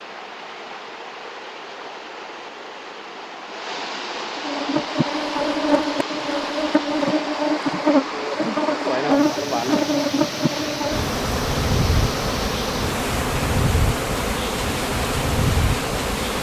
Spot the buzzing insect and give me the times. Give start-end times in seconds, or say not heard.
4.3-16.3.